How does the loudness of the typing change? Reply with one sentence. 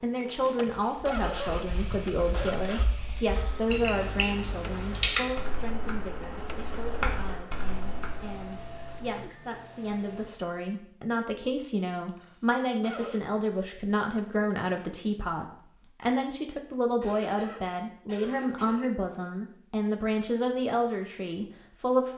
The loudness of the typing goes up, then down.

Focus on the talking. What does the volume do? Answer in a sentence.
The loudness of the talking goes down, then up.